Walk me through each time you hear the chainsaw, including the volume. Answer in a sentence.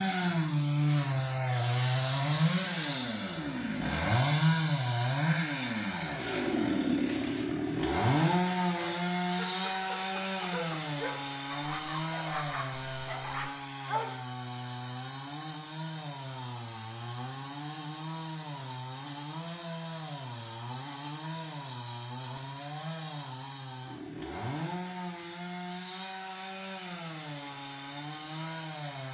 You can hear the chainsaw from 0.0 to 29.0 s, getting quieter.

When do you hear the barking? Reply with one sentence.
You can hear the barking from 8.7 to 14.2 s.